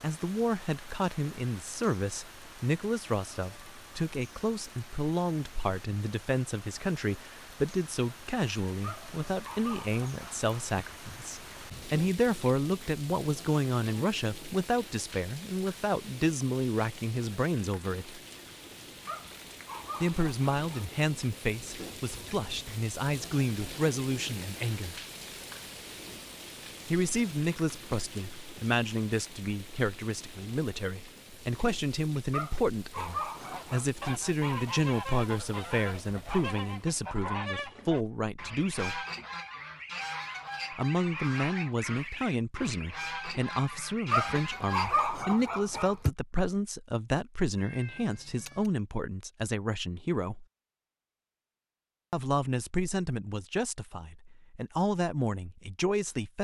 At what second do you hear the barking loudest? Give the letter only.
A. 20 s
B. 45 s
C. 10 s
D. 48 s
B.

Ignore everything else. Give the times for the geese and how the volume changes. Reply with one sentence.
The geese can be heard from 33.4 to 45.0 s, at a steady volume.